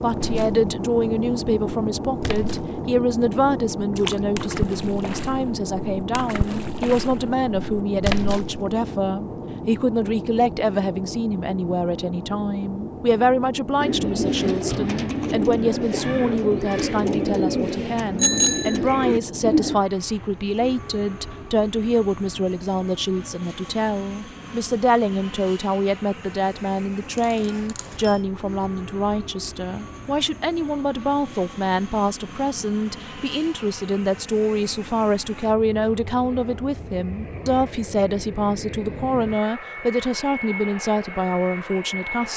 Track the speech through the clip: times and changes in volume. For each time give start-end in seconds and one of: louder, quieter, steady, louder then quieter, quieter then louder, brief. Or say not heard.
0.0-42.3 steady.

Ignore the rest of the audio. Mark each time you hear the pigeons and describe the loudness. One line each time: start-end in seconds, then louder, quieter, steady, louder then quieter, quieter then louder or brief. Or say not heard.
13.8-19.8 steady.